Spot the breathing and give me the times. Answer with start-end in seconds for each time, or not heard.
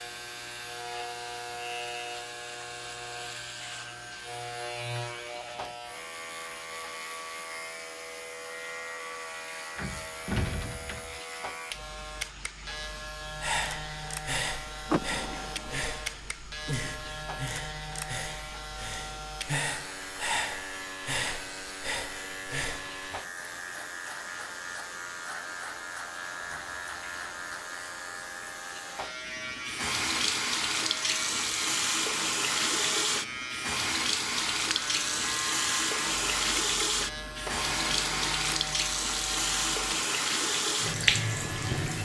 13.4-23.0.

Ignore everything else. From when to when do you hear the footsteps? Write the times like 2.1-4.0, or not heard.
not heard.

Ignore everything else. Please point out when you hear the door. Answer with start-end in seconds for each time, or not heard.
9.8-11.2, 14.8-15.8, 37.5-38.4.